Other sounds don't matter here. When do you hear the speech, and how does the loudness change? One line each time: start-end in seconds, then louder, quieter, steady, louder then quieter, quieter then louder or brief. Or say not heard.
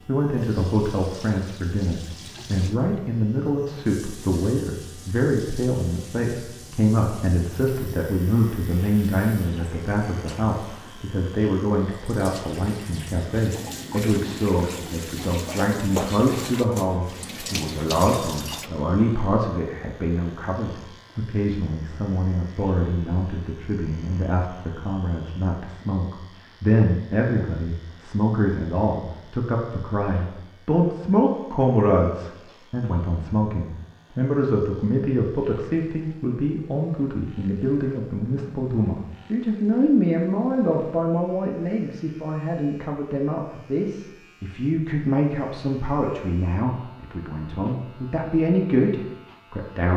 0.1-49.9 steady.